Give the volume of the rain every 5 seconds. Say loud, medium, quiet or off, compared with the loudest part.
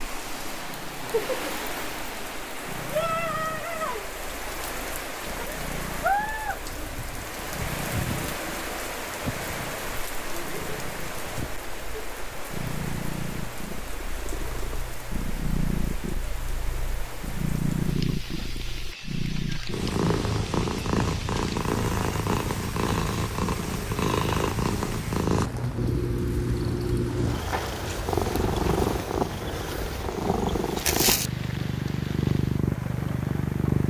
loud, loud, medium, medium, medium, medium, medium.